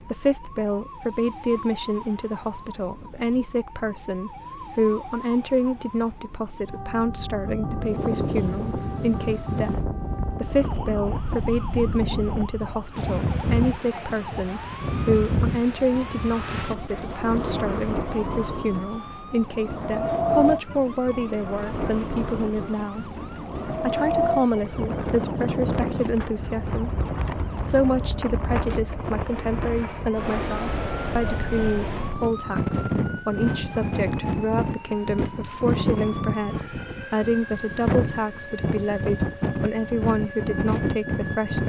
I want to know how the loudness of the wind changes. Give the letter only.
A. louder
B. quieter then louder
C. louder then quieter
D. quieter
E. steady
E.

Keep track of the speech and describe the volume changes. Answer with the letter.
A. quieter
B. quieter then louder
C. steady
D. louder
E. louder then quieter
C.